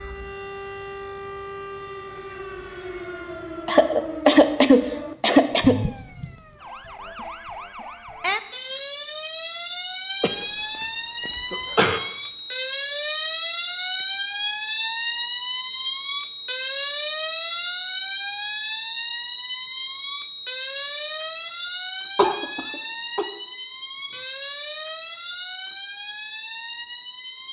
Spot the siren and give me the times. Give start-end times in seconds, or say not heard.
0.0-27.4.